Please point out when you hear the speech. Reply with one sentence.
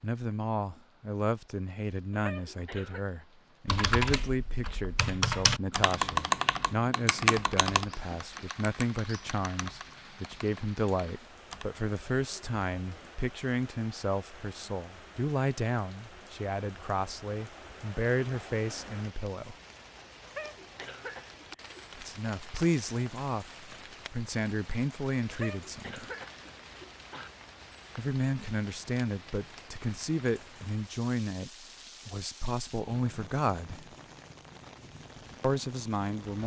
You can hear the speech from 0.0 to 19.6 s, from 21.9 to 26.1 s, from 27.9 to 33.9 s and from 35.4 to 36.4 s.